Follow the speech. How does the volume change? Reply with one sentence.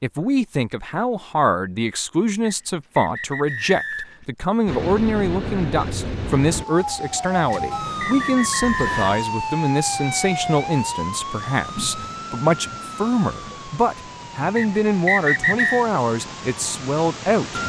The volume of the speech stays about the same.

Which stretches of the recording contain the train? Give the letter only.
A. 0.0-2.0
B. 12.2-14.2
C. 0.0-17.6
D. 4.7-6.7
D.